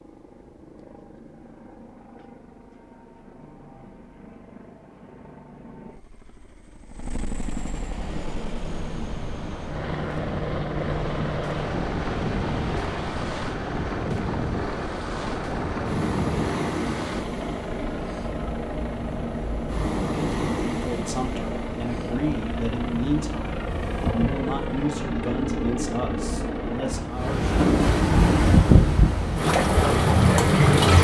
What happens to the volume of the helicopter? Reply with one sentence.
The loudness of the helicopter goes up.